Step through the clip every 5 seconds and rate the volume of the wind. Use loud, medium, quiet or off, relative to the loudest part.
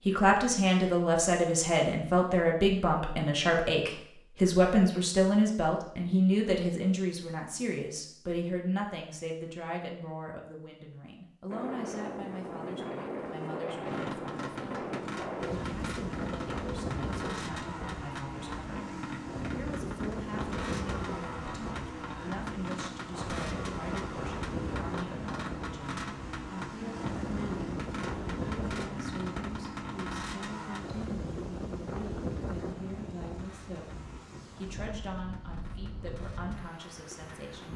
off, off, loud, loud, loud, loud, loud, medium.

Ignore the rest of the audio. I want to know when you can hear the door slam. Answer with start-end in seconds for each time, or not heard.
not heard.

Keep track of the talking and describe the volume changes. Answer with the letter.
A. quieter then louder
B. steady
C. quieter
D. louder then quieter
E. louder
C.